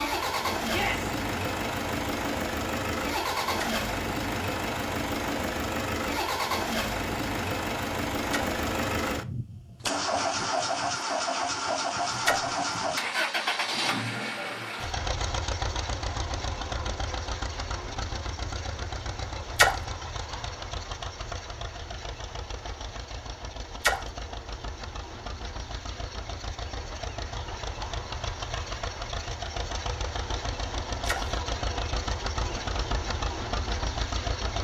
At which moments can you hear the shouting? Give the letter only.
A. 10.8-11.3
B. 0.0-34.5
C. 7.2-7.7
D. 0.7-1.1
D.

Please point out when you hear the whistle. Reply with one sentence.
The whistle can't be heard in this clip.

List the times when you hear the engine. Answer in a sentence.
The engine can be heard from 0.0 to 34.5 s.